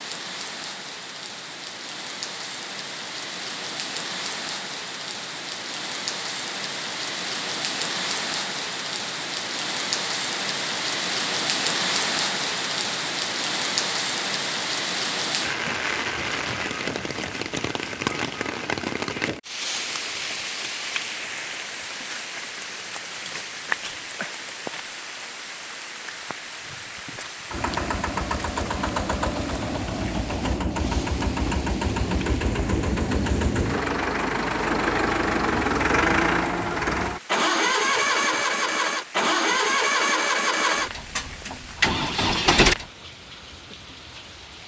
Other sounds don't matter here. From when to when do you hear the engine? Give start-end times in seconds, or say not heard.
27.5-42.9.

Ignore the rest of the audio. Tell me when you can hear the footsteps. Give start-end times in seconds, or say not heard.
not heard.